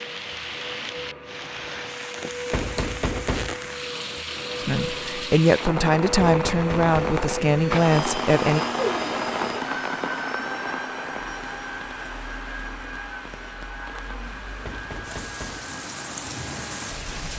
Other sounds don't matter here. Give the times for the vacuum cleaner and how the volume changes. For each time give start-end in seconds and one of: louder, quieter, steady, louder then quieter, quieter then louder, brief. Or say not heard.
0.0-17.3 louder then quieter.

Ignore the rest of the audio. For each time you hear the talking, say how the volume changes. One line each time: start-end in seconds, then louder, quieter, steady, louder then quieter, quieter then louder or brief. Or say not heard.
4.6-8.6 steady.